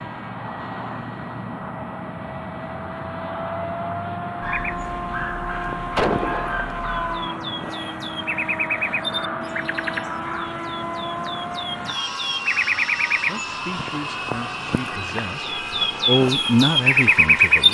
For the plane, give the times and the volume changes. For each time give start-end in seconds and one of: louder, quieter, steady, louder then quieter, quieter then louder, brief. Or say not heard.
0.0-17.6 steady.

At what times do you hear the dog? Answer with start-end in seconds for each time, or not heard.
4.4-7.2.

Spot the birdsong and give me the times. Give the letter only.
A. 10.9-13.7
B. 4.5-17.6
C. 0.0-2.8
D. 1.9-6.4
B.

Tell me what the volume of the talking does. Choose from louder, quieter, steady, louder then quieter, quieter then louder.
louder.